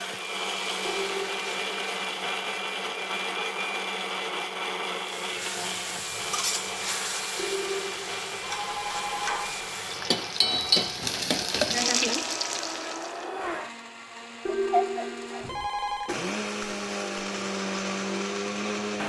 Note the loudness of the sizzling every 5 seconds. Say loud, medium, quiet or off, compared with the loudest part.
quiet, medium, loud, off.